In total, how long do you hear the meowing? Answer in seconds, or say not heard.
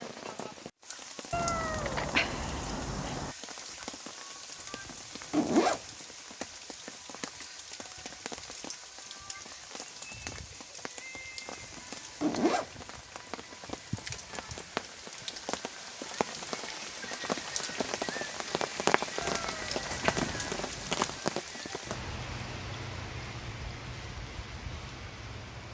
4 s.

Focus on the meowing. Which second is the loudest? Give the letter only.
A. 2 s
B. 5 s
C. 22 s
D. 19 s
A.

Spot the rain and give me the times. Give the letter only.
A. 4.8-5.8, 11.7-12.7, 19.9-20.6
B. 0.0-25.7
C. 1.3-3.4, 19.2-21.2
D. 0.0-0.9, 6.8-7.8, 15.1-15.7
B.